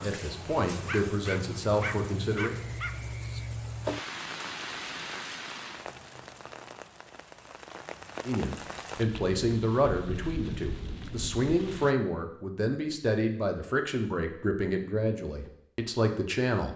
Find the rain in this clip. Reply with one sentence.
The rain can be heard from 0.0 to 11.9 s.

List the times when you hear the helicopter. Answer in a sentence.
You can't hear the helicopter here.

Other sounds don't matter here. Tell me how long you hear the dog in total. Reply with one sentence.
The dog can be heard for 2 seconds in total.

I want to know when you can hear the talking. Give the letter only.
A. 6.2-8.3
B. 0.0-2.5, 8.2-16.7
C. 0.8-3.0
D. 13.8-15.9
B.